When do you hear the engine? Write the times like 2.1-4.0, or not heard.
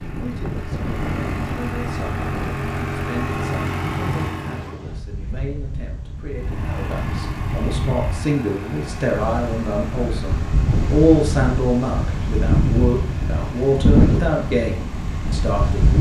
0.0-4.8, 6.3-15.9.